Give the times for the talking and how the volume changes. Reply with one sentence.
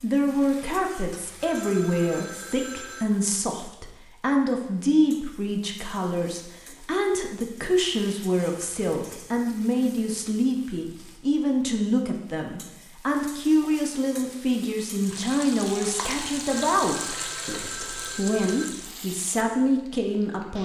The talking can be heard from 0.0 to 20.6 s, at a steady volume.